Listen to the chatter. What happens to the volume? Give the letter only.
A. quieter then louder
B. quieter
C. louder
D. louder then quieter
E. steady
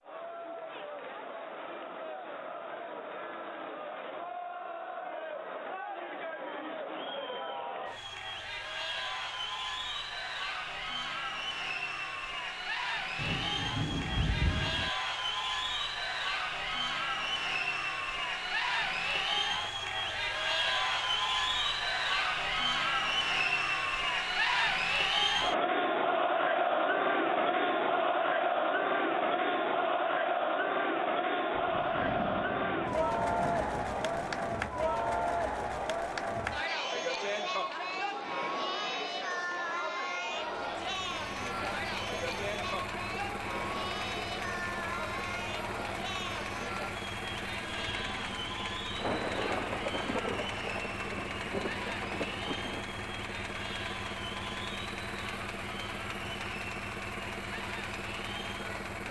D.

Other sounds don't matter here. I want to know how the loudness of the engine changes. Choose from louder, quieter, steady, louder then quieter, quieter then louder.
steady.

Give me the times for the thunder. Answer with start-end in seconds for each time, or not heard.
13.2-14.9, 31.6-35.2, 49.0-52.9.